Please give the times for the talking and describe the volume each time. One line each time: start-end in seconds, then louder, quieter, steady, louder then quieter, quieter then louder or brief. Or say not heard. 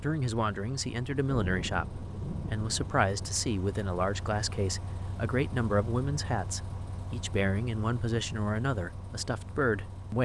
0.0-10.2 steady.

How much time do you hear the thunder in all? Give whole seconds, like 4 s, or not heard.
2 s.